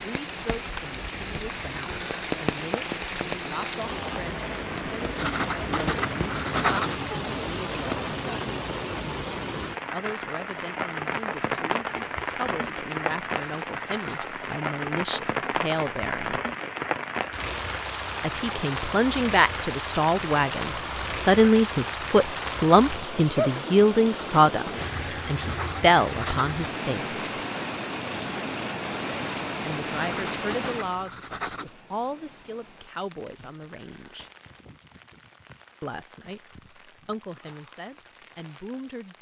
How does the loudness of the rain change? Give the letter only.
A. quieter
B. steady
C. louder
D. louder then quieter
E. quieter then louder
A.